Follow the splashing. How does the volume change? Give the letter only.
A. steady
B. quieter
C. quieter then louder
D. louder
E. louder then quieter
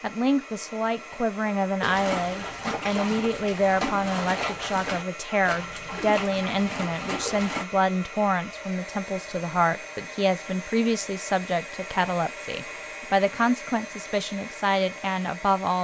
A.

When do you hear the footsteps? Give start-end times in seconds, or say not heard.
not heard.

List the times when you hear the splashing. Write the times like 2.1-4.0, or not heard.
1.8-7.7.